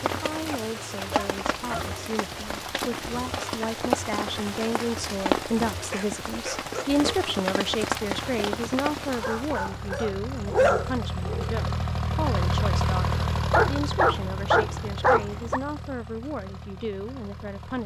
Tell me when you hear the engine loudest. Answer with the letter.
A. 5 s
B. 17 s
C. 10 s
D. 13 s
D.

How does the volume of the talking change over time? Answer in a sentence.
The loudness of the talking goes up, then down.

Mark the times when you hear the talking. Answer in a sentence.
You can hear the talking from 0.0 to 17.8 s.